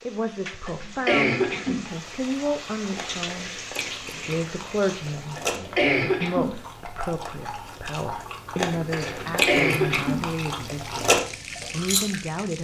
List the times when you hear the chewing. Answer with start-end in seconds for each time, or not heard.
1.9-12.2.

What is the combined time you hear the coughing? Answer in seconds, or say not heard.
3 s.